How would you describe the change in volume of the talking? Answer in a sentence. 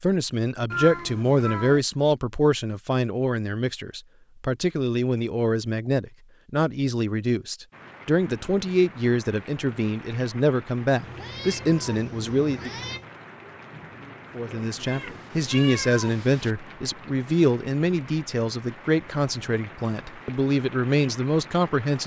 The loudness of the talking stays about the same.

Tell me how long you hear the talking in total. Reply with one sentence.
You can hear the talking for 20 seconds altogether.